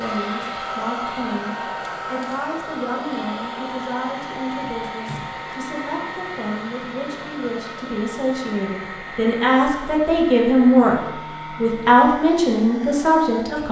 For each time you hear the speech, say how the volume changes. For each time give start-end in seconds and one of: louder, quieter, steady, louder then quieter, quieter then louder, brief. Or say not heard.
0.0-13.6 louder.